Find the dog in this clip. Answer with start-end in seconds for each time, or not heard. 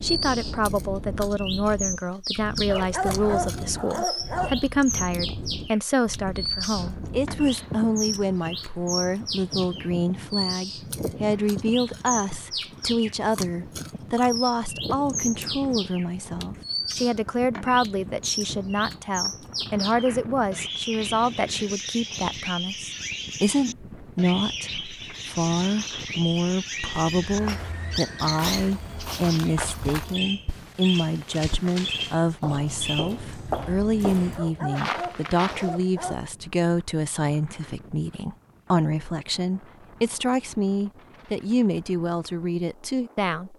2.7-4.7, 34.4-36.2.